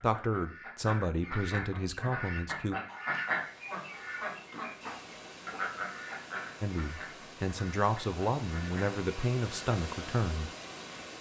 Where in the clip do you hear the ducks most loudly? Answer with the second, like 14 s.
3 s.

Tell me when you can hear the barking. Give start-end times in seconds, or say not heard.
4.8-5.8.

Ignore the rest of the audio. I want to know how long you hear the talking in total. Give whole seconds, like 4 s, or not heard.
7 s.